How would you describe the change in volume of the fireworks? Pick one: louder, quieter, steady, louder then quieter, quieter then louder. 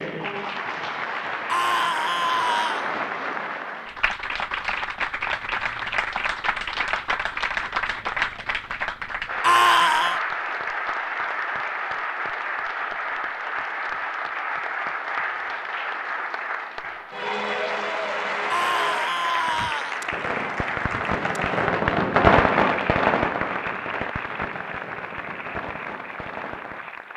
louder then quieter.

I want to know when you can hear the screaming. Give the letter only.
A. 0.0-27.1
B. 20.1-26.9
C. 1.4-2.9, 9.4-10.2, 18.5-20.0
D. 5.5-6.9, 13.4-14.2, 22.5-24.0
C.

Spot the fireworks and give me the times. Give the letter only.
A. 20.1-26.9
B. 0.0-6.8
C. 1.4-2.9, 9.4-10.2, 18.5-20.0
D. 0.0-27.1
A.